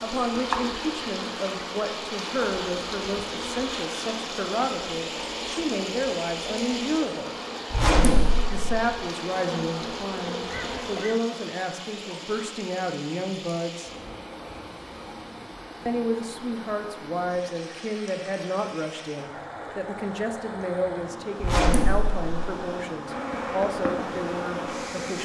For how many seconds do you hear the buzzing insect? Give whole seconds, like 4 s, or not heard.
13 s.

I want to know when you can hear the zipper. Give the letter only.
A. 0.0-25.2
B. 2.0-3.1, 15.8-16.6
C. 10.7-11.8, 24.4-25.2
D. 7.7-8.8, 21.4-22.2
D.